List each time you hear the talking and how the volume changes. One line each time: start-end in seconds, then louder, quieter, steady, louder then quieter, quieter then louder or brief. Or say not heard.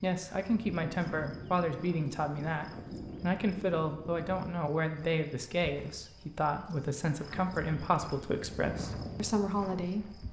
0.0-10.2 steady.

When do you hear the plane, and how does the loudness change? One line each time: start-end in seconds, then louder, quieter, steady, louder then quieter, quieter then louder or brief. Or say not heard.
not heard.